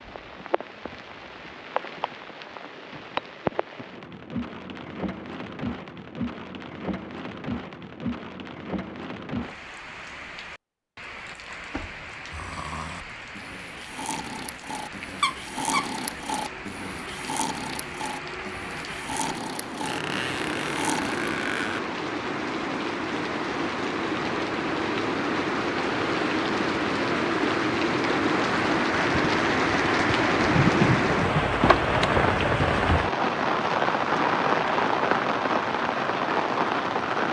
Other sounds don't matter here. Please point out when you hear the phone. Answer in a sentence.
The phone can't be heard in this clip.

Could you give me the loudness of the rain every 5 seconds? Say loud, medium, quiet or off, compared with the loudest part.
quiet, quiet, quiet, quiet, medium, loud, loud, loud.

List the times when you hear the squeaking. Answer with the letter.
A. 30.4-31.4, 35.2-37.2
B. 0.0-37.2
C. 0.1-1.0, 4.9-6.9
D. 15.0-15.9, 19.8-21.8
D.